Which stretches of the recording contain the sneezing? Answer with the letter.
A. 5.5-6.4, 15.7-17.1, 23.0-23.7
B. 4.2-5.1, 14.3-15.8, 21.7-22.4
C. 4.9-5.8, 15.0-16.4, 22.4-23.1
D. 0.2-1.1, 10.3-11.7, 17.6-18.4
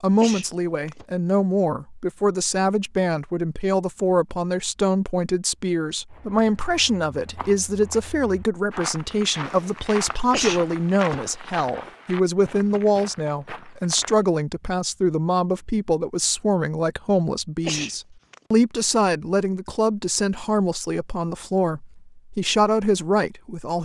D.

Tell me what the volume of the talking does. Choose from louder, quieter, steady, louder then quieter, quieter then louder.
steady.